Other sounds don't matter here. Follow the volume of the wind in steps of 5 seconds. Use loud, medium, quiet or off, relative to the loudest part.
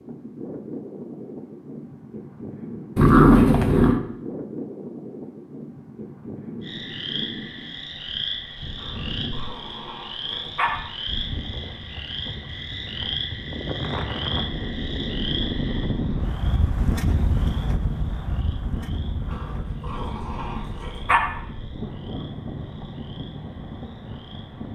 medium, medium, medium, loud, medium.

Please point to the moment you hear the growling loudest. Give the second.
3 s.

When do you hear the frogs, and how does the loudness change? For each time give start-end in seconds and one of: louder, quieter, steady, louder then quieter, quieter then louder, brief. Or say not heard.
6.6-24.6 quieter.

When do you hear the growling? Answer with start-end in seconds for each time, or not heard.
3.0-4.0, 8.8-10.7, 19.3-21.2.